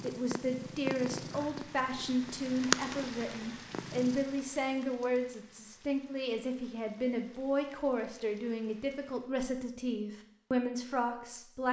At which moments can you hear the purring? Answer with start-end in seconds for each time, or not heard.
0.0-4.3.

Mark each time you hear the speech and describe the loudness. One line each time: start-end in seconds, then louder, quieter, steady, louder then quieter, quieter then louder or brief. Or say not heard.
0.0-11.6 steady.